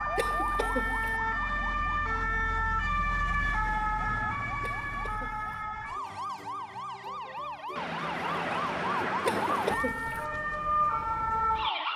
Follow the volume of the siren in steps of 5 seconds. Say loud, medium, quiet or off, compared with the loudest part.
loud, medium, loud.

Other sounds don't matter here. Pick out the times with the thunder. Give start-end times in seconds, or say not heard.
7.8-9.8.